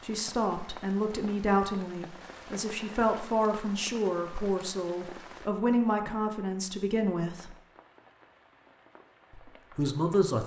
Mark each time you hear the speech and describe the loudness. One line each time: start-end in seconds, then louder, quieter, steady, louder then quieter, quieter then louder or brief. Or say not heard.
0.0-7.5 steady
9.3-10.4 brief.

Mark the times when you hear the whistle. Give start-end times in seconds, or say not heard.
not heard.